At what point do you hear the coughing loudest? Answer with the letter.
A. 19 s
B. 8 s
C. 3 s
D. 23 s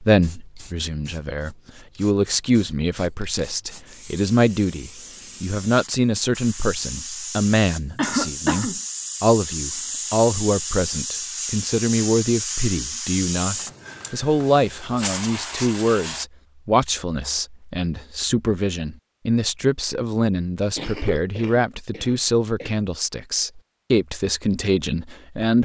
B.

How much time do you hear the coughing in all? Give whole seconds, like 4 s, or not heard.
3 s.